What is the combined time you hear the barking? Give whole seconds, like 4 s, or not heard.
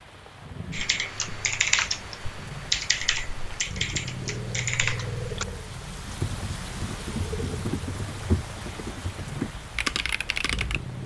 not heard.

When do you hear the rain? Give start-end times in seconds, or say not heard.
0.0-11.0.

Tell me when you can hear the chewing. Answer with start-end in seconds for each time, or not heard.
not heard.